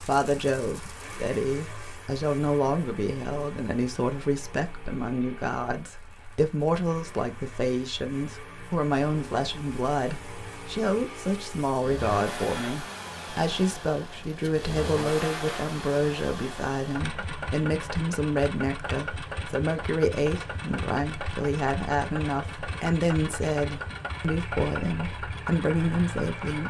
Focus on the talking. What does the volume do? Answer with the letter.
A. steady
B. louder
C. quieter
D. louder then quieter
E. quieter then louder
A.